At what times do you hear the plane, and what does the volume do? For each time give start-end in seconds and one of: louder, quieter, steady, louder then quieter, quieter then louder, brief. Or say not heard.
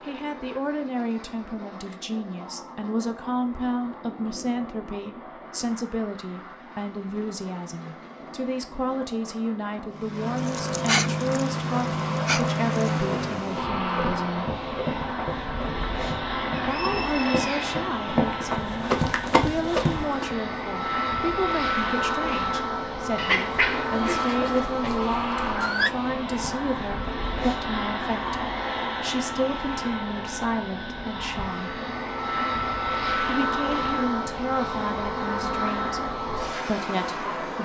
0.0-37.6 louder.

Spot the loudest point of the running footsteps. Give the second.
19 s.